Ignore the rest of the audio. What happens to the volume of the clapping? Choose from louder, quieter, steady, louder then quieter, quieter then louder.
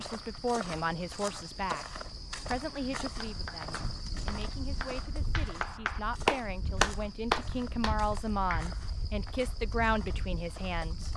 louder then quieter.